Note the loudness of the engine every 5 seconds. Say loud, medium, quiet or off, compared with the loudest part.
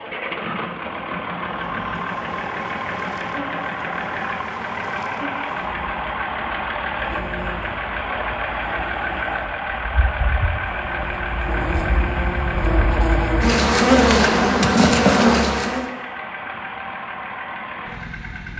loud, loud, loud, medium.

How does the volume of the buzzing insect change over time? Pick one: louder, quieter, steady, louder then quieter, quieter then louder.
louder.